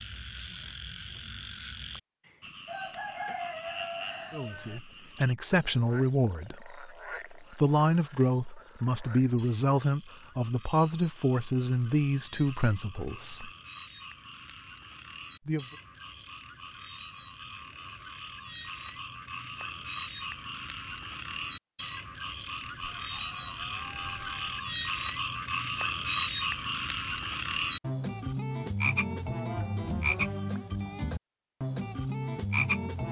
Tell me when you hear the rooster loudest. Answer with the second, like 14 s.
3 s.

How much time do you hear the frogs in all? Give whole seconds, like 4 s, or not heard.
33 s.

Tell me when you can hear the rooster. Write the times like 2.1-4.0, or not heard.
2.2-4.8, 22.7-24.6.